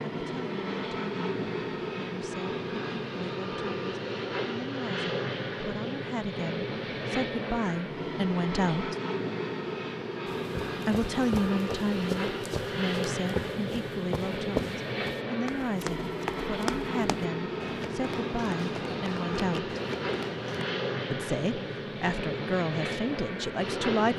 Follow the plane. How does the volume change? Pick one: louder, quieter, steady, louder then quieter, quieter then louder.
steady.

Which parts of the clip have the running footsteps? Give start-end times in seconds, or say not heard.
10.2-20.7.